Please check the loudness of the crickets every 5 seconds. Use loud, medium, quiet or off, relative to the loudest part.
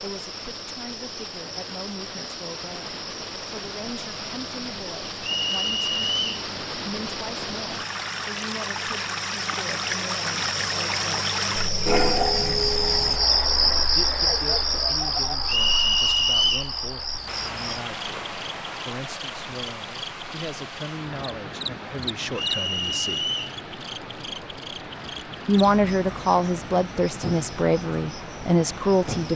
quiet, quiet, loud, medium, quiet, quiet.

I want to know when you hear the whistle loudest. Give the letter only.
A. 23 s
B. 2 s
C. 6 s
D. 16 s
D.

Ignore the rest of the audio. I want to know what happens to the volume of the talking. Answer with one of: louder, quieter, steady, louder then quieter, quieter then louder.
louder.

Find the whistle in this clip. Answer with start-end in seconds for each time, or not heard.
5.2-6.3, 15.4-16.7, 22.3-23.6.